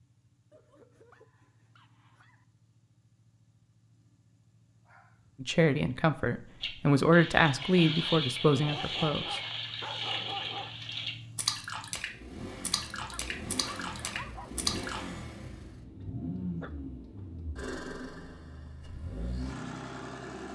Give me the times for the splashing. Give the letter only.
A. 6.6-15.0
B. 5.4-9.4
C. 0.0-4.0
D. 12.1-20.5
A.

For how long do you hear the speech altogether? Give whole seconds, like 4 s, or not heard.
4 s.